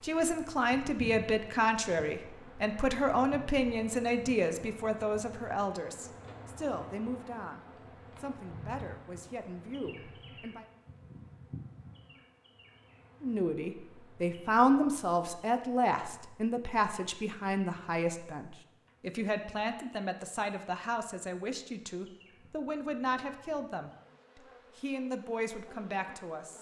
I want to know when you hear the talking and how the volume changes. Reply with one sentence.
You can hear the talking from 0.0 to 10.7 s, getting quieter; and from 13.2 to 26.5 s, getting quieter.